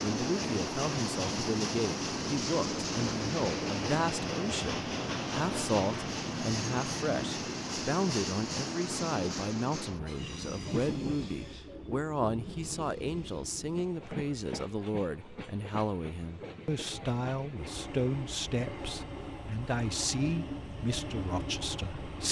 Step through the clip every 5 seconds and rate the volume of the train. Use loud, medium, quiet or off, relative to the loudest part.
loud, loud, medium, medium, medium.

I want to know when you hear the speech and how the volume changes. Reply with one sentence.
You can hear the speech from 0.0 to 22.2 s, at a steady volume.